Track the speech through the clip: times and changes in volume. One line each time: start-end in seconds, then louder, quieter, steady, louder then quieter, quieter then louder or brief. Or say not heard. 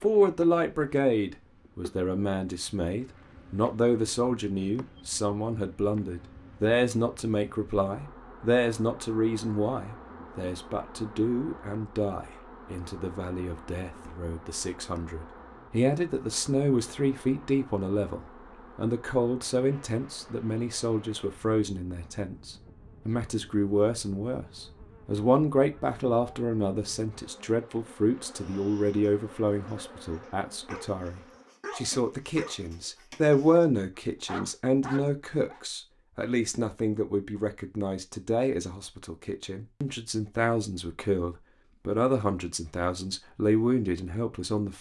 0.0-44.7 steady.